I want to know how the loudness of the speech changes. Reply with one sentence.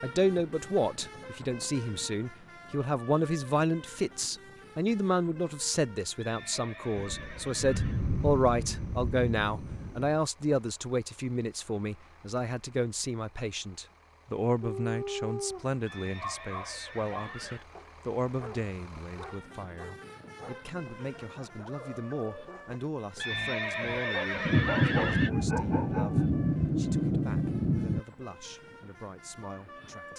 The volume of the speech goes down.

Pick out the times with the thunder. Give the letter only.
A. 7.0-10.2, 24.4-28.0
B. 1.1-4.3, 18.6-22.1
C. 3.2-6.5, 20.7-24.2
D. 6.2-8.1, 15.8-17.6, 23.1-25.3
A.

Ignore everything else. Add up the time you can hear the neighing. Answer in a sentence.
The neighing can be heard for 6 seconds in total.